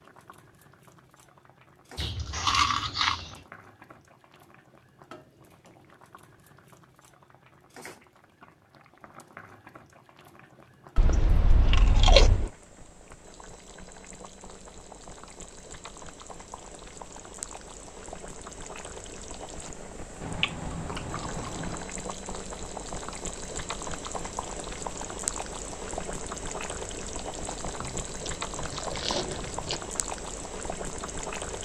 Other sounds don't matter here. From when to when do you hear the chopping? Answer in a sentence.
You can't hear the chopping here.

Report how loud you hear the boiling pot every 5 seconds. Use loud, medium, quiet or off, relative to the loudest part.
quiet, quiet, quiet, medium, loud, loud, loud.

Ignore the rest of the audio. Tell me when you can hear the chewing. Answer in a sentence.
You can hear the chewing from 1.9 to 3.4 s, from 10.9 to 12.5 s, from 20.2 to 21.9 s and from 27.8 to 29.8 s.